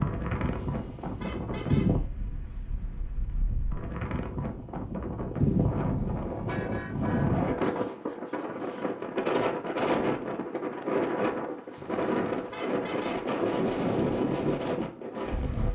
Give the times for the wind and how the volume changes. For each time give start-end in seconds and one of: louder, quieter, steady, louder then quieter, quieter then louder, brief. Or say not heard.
0.0-15.7 steady.